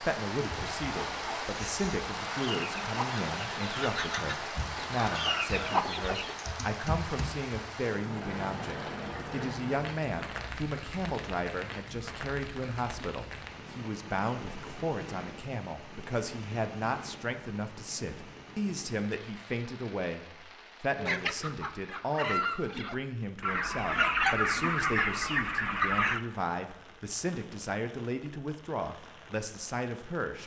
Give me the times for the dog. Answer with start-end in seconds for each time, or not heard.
not heard.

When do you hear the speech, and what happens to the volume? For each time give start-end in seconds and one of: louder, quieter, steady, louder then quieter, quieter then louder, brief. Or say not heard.
0.0-30.4 steady.